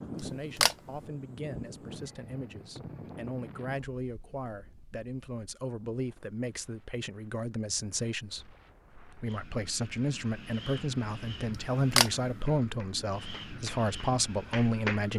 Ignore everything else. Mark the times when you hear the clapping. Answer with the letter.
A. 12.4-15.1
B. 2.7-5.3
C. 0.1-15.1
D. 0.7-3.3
A.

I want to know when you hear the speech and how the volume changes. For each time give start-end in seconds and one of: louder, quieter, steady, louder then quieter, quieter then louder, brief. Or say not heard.
0.1-15.1 louder.